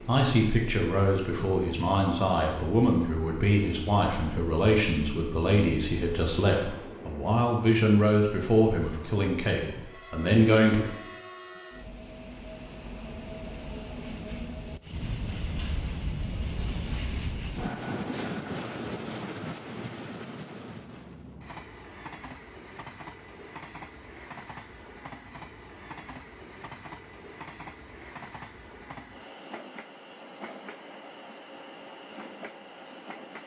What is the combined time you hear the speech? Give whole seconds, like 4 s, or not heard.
11 s.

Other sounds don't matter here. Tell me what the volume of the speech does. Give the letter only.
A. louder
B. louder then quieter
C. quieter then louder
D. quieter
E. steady
E.